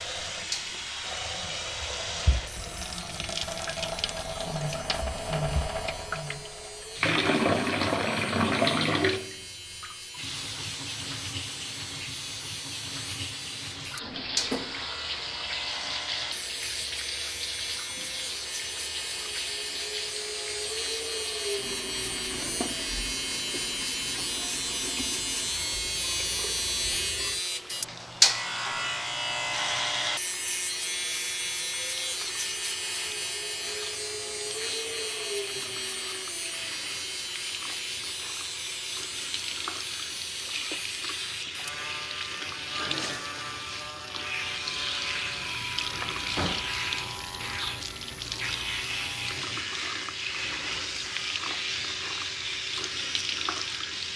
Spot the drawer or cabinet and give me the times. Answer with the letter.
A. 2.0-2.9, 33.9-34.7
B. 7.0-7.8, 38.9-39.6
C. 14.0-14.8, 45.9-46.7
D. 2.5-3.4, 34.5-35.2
C.